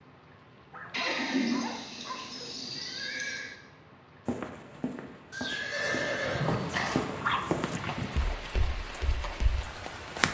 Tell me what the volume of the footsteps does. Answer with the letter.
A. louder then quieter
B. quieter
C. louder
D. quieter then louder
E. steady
A.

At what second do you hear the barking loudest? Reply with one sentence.
The volume of the barking peaks at 7 seconds.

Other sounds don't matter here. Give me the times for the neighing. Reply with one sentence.
You can hear the neighing from 0.9 to 3.5 s and from 5.3 to 7.0 s.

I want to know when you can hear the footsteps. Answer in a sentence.
You can hear the footsteps from 4.2 to 10.2 s.